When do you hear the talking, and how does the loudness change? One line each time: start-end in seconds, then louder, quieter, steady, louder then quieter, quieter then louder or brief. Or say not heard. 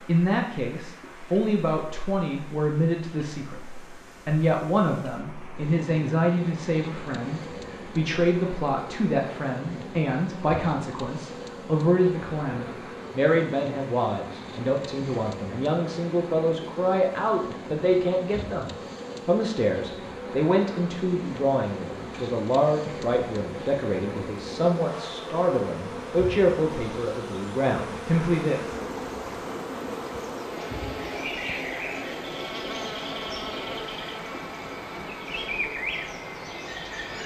0.0-28.9 steady.